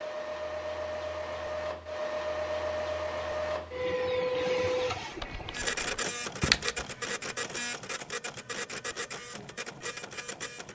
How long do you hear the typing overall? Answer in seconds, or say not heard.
2 s.